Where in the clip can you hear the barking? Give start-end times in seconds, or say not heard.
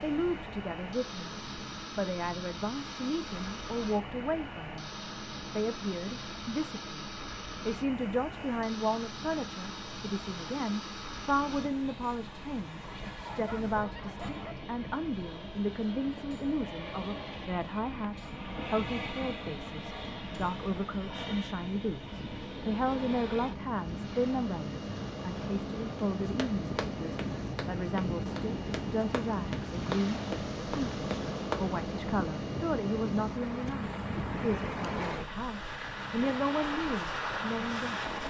12.8-14.6.